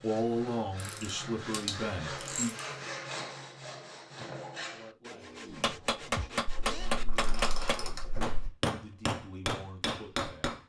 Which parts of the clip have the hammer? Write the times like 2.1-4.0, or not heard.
5.6-10.6.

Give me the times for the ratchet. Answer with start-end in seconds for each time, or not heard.
0.8-2.6, 6.5-8.5.